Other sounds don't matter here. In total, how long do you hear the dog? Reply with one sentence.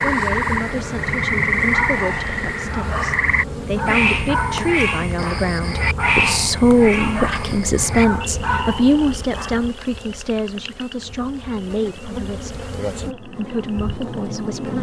You can hear the dog for 8 seconds altogether.